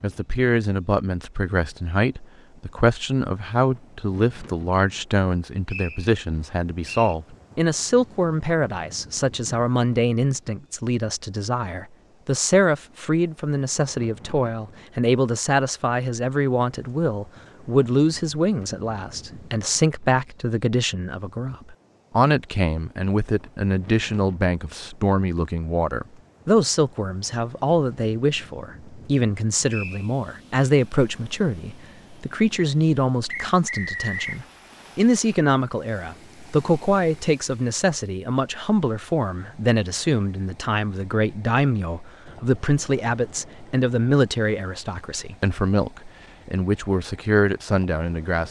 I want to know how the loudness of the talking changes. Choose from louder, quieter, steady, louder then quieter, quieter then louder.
steady.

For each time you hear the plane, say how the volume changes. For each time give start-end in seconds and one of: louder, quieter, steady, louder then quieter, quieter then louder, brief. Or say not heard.
not heard.